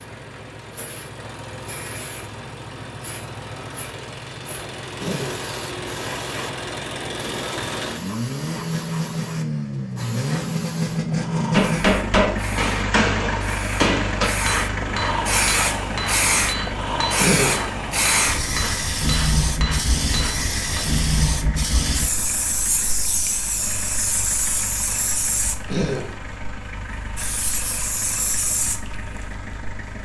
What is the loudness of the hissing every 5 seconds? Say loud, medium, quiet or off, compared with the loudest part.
quiet, quiet, medium, loud, loud, medium.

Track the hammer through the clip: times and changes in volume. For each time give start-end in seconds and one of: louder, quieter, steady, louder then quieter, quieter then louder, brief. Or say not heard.
11.5-21.1 quieter.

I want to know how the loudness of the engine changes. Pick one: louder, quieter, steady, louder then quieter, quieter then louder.
louder then quieter.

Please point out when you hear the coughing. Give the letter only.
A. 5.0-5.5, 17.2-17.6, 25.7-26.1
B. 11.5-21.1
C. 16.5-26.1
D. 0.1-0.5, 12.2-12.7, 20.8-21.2
A.